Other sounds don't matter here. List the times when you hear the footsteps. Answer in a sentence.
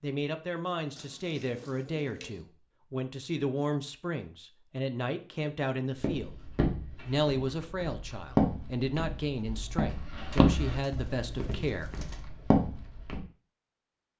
The footsteps can be heard from 6.0 to 13.2 s.